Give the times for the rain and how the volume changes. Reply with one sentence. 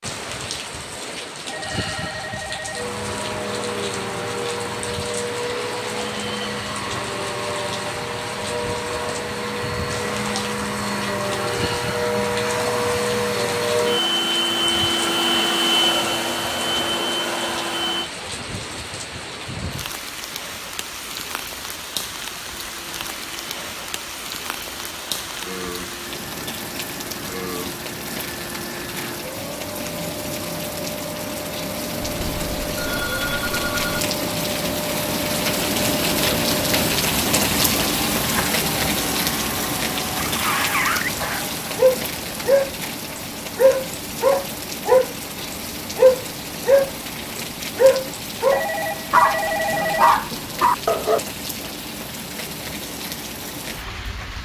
You can hear the rain from 0.0 to 54.4 s, getting louder then quieter.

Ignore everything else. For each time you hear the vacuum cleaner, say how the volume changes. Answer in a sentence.
You can hear the vacuum cleaner from 2.8 to 18.1 s, getting louder; and from 22.8 to 41.6 s, getting louder.